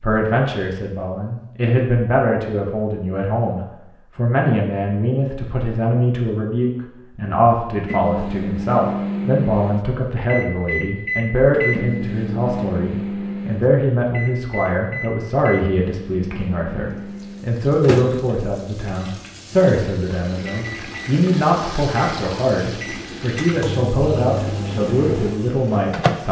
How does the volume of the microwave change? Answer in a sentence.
The volume of the microwave goes down, then up.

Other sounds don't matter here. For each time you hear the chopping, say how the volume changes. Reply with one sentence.
The chopping can't be heard in this clip.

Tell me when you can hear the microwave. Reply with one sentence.
The microwave can be heard from 7.8 to 26.2 s.